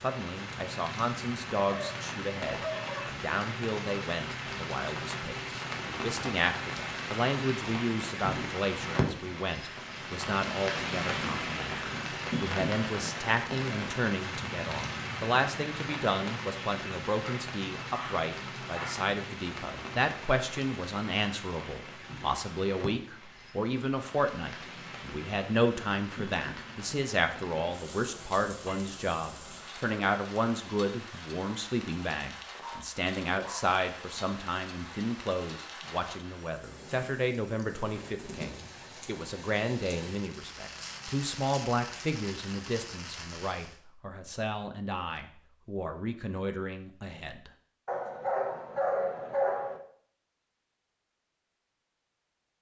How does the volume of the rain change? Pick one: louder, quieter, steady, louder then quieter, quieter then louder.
quieter.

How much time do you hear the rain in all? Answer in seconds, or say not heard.
44 s.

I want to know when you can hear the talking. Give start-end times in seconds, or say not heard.
0.0-47.5.